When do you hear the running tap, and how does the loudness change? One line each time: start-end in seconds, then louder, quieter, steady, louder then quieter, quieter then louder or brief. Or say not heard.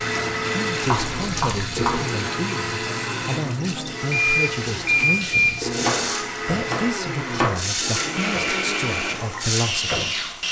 0.0-10.4 steady.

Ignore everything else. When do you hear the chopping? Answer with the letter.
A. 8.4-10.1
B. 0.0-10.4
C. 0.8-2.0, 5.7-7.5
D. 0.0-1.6
C.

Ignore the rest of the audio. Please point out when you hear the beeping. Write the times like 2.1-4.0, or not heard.
4.1-5.8.